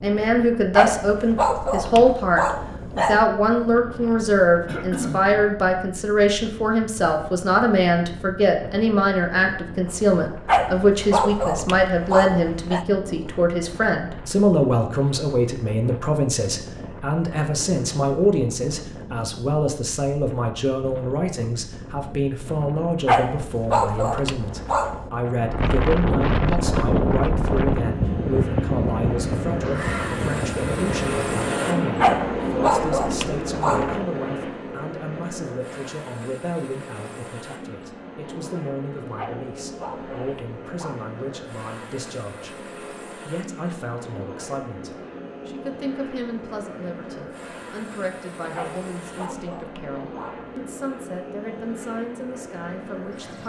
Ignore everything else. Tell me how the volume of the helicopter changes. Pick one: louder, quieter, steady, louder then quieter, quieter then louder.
quieter.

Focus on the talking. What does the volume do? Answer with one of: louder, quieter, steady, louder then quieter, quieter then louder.
quieter.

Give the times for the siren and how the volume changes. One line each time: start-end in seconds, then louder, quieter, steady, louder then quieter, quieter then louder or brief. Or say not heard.
not heard.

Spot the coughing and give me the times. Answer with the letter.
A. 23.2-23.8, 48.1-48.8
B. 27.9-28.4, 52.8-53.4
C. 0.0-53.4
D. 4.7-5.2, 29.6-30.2
D.